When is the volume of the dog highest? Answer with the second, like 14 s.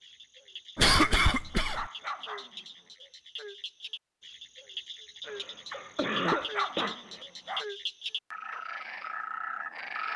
6 s.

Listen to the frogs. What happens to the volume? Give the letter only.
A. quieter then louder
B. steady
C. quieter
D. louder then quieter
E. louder
E.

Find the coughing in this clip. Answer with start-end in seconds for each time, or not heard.
0.8-1.9, 5.8-7.0.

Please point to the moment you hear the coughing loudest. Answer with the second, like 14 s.
1 s.